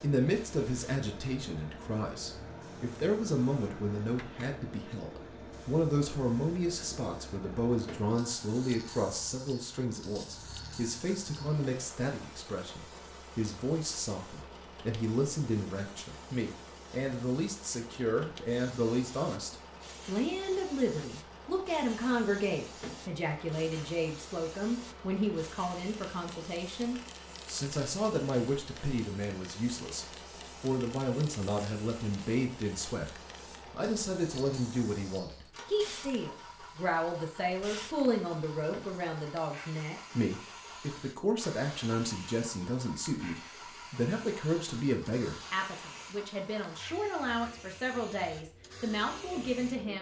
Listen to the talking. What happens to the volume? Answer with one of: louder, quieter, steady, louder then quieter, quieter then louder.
steady.